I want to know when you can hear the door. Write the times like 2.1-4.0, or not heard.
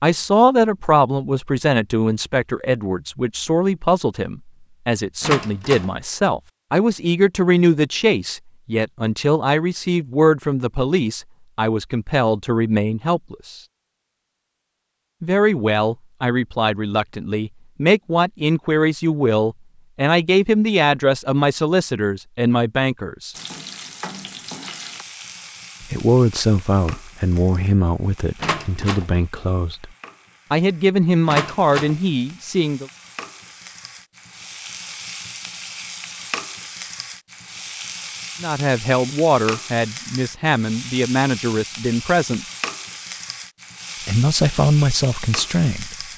5.2-5.9, 28.4-29.1, 31.2-31.9.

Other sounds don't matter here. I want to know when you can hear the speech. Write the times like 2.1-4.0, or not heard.
0.0-13.6, 15.2-23.4, 25.8-29.9, 30.5-32.9, 38.4-42.5, 44.0-46.0.